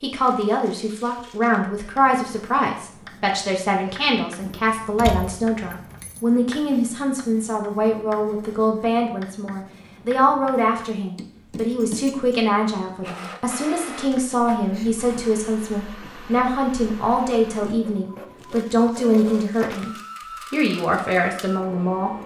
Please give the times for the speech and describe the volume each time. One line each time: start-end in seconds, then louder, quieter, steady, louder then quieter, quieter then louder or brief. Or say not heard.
0.0-22.1 steady.